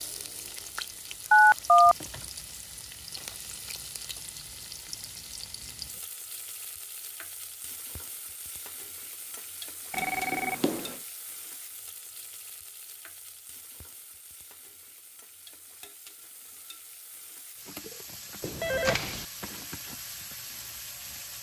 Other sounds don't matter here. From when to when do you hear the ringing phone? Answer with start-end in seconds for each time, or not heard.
1.3-1.9, 9.9-10.9, 18.4-19.2.